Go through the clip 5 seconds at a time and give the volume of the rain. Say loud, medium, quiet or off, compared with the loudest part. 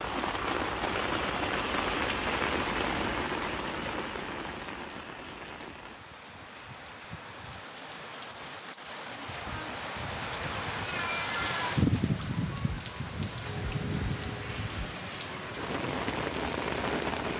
loud, medium, loud, loud.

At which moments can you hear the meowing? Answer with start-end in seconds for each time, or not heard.
10.8-11.7.